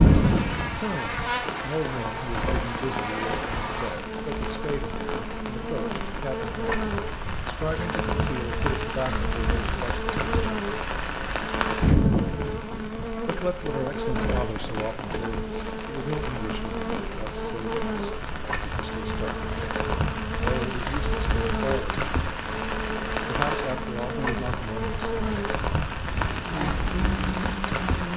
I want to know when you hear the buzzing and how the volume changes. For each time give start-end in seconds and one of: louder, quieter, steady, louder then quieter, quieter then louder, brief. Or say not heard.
0.0-28.1 steady.